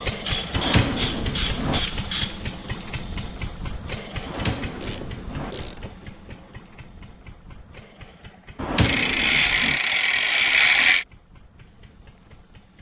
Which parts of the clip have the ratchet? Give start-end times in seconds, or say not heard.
0.2-2.4, 4.3-5.9, 8.8-11.1.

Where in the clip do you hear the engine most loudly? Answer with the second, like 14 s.
1 s.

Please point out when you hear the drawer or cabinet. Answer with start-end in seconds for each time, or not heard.
0.6-1.8, 4.2-5.5, 8.6-9.8.